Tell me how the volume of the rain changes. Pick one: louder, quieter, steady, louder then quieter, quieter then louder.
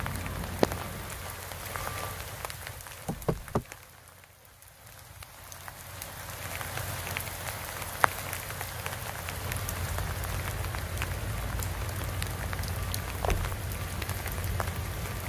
quieter then louder.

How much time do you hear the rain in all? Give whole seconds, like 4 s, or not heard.
15 s.